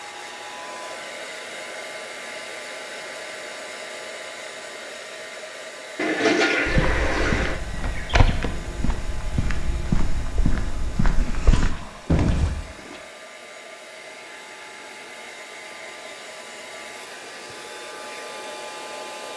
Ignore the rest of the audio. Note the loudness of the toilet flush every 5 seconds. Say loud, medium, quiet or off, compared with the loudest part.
off, loud, quiet, off.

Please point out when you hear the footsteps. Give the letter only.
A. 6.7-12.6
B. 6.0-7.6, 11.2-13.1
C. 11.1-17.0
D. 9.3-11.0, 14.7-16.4
A.